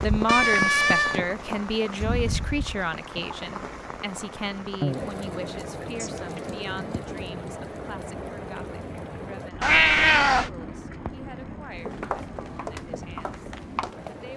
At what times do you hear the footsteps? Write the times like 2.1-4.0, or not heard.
11.8-14.3.